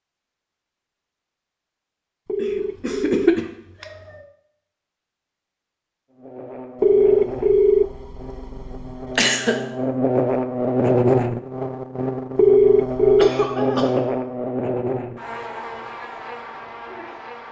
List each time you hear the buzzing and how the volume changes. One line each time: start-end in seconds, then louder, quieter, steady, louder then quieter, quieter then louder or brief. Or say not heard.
6.1-17.4 louder then quieter.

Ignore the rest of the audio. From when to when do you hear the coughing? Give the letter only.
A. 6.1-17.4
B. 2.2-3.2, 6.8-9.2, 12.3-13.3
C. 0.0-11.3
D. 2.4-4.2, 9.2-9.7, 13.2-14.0
D.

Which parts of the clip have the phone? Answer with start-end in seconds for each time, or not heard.
2.2-3.2, 6.8-9.2, 12.3-13.3.